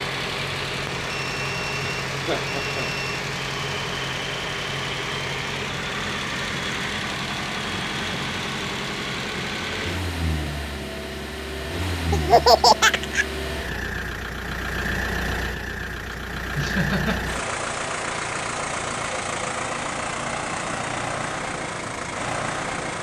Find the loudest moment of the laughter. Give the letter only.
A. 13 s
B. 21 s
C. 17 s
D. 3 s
A.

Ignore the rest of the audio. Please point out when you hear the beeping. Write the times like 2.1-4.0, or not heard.
1.1-3.2.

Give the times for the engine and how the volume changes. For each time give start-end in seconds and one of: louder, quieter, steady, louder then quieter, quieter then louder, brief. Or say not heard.
0.0-22.9 steady.